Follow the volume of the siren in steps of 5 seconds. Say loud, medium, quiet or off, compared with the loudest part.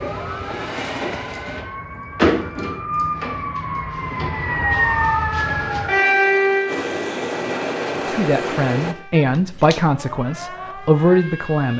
loud, loud, quiet.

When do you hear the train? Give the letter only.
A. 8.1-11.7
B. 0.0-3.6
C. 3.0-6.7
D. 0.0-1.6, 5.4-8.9
D.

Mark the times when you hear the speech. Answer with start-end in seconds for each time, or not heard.
8.1-11.7.